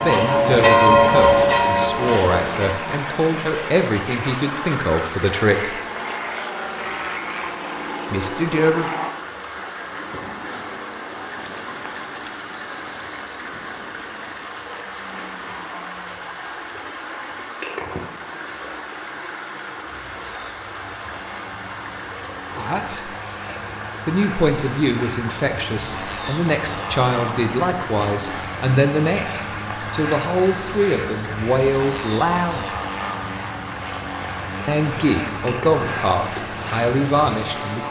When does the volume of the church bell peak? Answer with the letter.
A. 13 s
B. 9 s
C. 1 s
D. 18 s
C.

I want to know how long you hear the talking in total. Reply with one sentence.
The talking can be heard for 19 seconds in total.